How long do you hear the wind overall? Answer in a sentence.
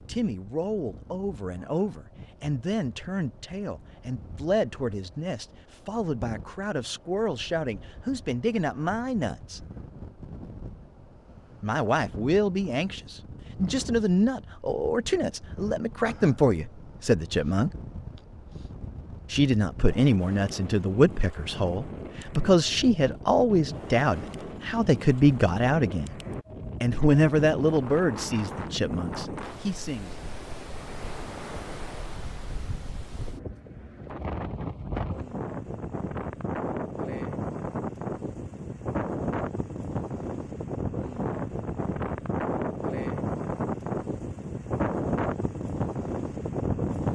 You can hear the wind for 47 seconds altogether.